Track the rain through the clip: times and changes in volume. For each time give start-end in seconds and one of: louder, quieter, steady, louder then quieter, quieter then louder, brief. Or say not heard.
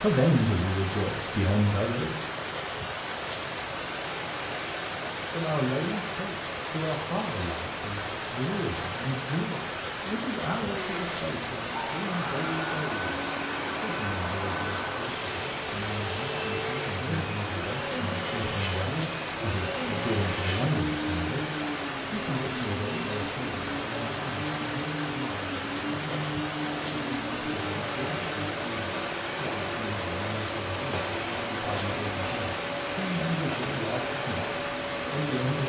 0.0-35.6 steady.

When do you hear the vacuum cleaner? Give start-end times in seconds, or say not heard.
10.8-35.6.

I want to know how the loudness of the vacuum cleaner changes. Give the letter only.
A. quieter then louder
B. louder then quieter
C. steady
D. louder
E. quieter
C.